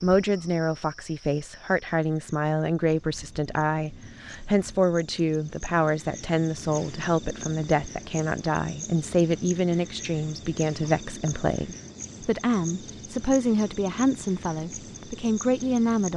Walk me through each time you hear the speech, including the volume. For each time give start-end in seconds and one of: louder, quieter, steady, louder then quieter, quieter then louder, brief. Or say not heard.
0.0-16.1 steady.